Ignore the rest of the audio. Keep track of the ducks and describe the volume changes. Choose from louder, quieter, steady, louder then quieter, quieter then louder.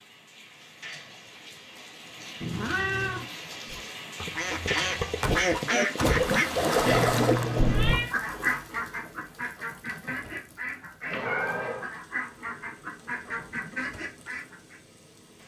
quieter.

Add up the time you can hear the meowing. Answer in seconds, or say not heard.
3 s.